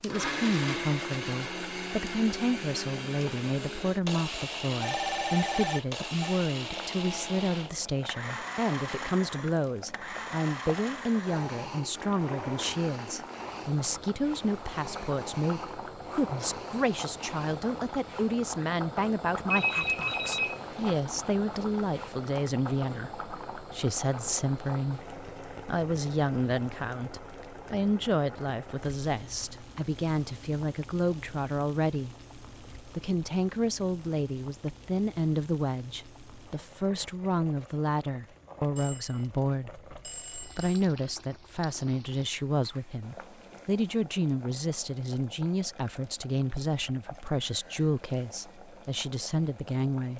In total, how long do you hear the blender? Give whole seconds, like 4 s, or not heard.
18 s.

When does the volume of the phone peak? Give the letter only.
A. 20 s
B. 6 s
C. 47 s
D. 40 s
A.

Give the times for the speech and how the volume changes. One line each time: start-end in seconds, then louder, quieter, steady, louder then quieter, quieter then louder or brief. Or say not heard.
0.0-32.1 steady
32.9-50.1 steady.